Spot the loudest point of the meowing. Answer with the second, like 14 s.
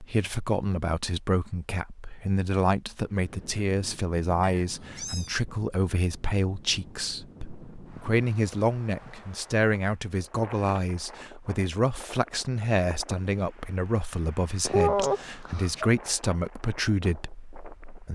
15 s.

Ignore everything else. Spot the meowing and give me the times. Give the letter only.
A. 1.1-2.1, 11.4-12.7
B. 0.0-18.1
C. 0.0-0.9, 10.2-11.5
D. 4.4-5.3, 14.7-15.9
D.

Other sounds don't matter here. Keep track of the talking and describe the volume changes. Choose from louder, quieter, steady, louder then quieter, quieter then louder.
steady.